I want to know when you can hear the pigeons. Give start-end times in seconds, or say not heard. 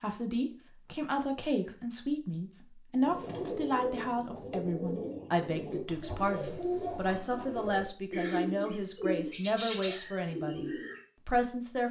3.0-11.0.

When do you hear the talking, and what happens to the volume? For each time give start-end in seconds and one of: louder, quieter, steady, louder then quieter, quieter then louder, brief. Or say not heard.
0.0-11.8 steady.